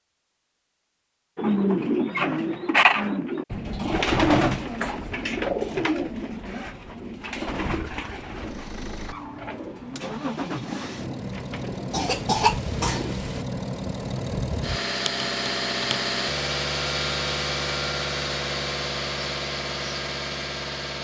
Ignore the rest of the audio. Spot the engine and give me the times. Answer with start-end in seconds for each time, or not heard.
8.3-20.9.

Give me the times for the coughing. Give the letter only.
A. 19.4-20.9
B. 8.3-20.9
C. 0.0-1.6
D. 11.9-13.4
D.